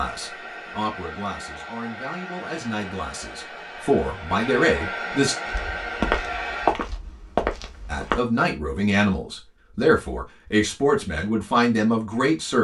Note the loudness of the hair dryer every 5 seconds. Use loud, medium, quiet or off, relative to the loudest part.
medium, loud, off.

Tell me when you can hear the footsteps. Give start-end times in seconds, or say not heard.
5.5-8.2.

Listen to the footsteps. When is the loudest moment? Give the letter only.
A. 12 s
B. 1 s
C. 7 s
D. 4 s
C.